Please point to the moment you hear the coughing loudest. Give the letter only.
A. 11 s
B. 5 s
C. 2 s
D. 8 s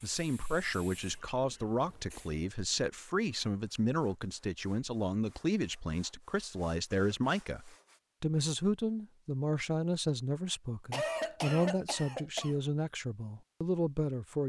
A.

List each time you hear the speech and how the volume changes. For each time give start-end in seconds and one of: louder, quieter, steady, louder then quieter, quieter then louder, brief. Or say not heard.
0.0-14.4 steady.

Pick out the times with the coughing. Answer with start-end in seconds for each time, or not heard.
1.1-2.5, 6.9-7.3, 10.9-12.6.